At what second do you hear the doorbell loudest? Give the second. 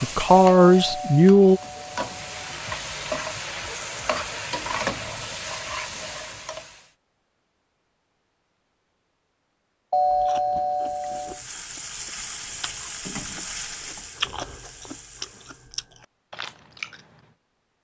10 s.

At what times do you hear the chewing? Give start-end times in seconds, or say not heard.
10.0-17.3.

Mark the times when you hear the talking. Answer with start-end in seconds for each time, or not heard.
0.0-1.6.